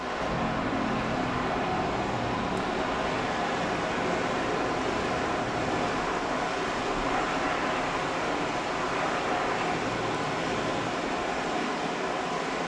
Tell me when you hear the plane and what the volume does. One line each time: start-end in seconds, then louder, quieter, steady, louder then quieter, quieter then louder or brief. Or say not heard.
0.0-10.8 steady.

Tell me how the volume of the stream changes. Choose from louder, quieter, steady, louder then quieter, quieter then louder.
steady.